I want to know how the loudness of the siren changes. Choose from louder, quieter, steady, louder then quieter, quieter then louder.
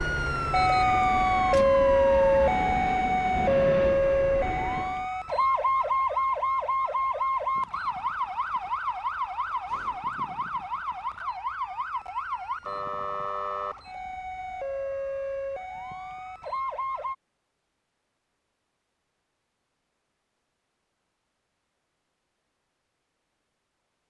quieter.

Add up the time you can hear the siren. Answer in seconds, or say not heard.
17 s.